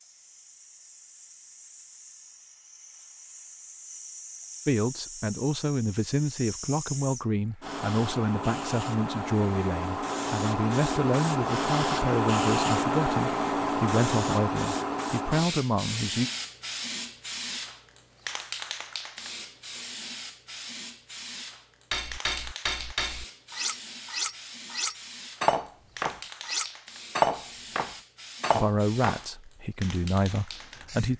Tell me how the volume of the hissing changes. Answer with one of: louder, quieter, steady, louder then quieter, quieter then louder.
louder then quieter.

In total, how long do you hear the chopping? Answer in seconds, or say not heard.
not heard.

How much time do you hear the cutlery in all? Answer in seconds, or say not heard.
7 s.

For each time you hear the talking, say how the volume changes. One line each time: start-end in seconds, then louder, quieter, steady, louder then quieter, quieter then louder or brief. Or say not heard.
4.7-16.3 steady
28.5-31.1 brief.